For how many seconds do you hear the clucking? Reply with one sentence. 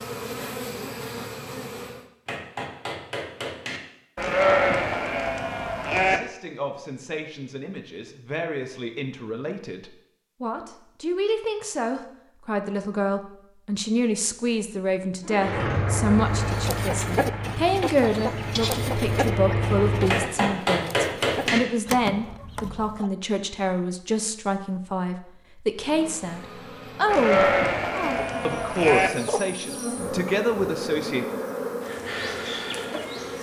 You can hear the clucking for 7 seconds altogether.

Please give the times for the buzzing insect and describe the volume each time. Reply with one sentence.
The buzzing insect can be heard briefly from 0.0 to 2.0 s; and from 25.8 to 33.3 s, getting louder.